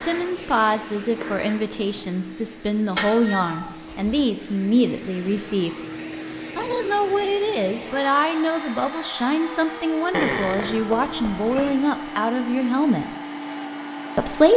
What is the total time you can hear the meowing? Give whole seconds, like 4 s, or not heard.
3 s.